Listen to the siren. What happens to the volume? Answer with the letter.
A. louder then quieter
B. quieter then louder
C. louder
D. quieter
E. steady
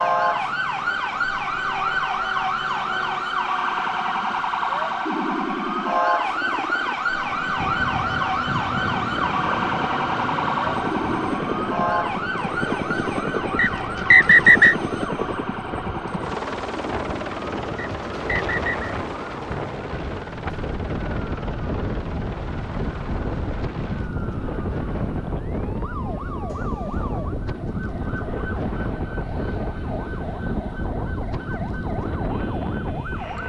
D.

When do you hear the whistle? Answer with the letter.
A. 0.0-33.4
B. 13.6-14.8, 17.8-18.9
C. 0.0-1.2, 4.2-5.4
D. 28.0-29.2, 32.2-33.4
B.